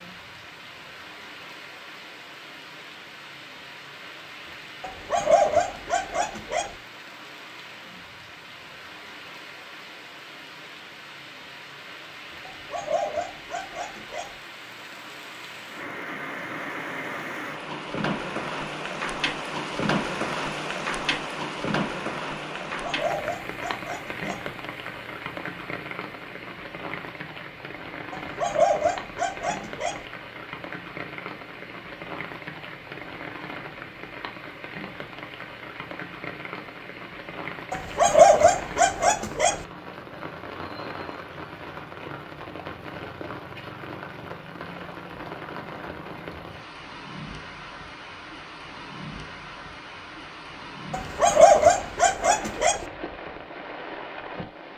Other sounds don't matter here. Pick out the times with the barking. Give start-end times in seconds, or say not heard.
4.8-6.8, 12.4-14.3, 22.7-24.4, 28.1-30.1, 37.7-39.6, 50.9-52.9.